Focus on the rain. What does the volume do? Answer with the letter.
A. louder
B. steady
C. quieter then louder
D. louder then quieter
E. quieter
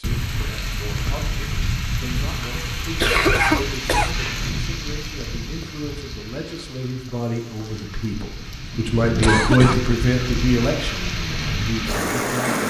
C.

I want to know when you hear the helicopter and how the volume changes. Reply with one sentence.
You can't hear the helicopter here.